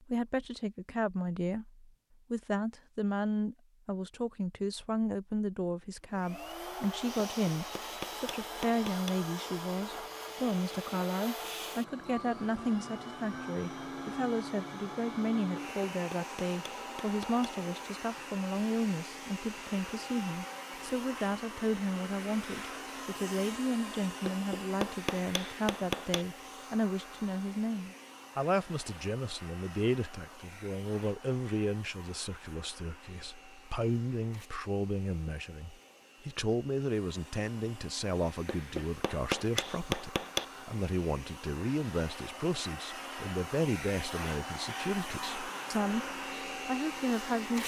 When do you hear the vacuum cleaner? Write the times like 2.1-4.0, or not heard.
6.1-47.6.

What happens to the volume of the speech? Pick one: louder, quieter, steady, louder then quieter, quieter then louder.
steady.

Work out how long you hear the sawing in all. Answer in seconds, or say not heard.
not heard.